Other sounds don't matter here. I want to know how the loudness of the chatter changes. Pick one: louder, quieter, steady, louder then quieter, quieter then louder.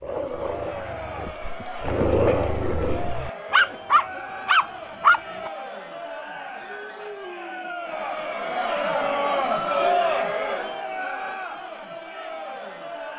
louder then quieter.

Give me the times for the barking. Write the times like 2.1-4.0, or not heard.
0.0-5.5.